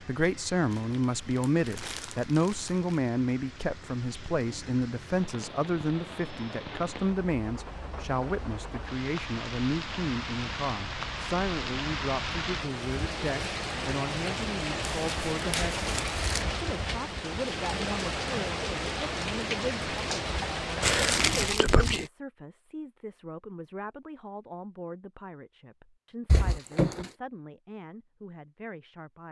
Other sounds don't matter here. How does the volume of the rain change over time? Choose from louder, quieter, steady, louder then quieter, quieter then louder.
louder.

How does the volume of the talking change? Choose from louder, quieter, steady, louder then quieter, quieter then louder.
quieter.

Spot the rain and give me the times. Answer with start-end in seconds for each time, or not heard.
0.0-21.6.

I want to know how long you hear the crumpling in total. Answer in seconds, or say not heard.
5 s.